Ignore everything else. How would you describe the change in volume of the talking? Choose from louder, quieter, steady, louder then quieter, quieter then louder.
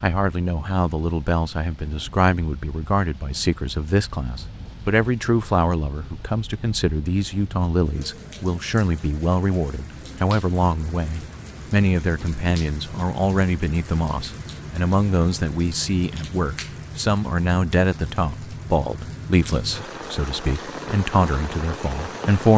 steady.